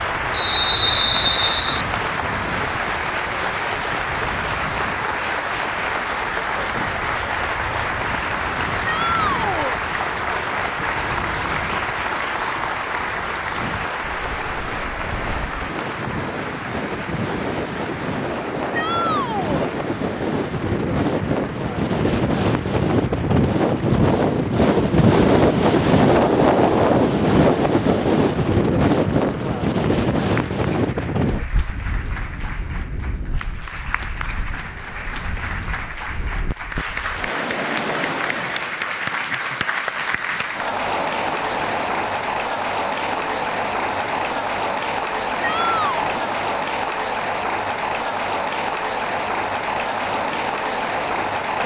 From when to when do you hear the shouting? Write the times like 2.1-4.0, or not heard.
8.8-9.8, 18.7-19.7, 45.4-46.1.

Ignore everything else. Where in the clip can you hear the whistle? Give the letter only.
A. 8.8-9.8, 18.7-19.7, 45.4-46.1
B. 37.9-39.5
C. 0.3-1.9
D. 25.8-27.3
C.